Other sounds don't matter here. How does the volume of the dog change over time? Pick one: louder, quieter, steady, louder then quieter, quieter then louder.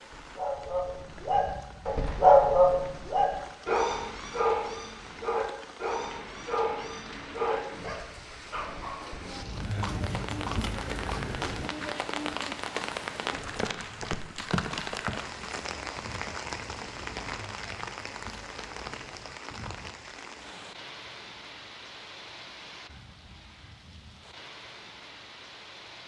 louder then quieter.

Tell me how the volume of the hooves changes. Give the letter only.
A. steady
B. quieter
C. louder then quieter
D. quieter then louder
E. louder
B.